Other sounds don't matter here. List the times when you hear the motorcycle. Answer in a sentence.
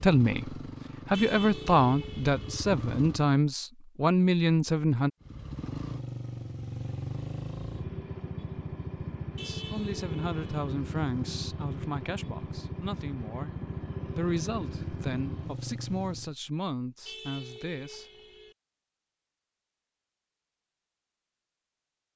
The motorcycle can be heard from 0.0 to 3.3 s and from 5.2 to 16.4 s.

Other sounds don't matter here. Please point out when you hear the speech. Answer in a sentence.
The speech can be heard from 0.0 to 5.1 s and from 9.4 to 18.1 s.